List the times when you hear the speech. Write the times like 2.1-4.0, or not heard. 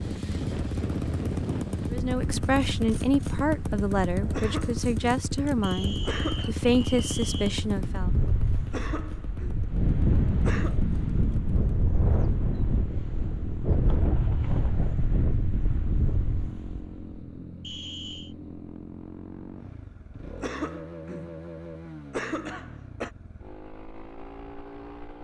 1.9-8.1.